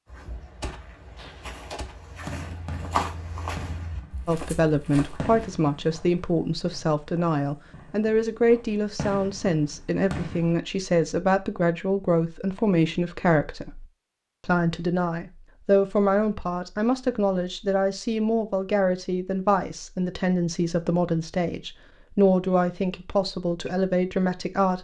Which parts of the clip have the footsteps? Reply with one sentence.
The footsteps can be heard from 0.1 to 5.5 s.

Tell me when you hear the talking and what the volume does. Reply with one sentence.
The talking can be heard from 4.2 to 13.8 s, at a steady volume; and from 14.4 to 24.8 s, at a steady volume.